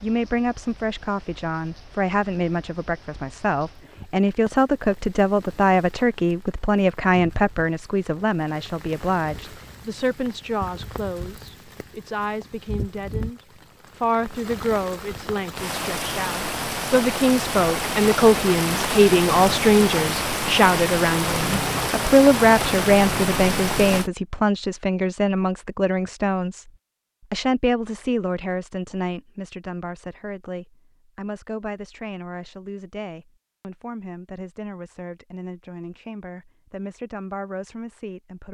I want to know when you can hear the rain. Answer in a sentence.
You can hear the rain from 0.0 to 24.1 s.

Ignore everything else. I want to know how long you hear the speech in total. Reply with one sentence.
The speech can be heard for 38 seconds in total.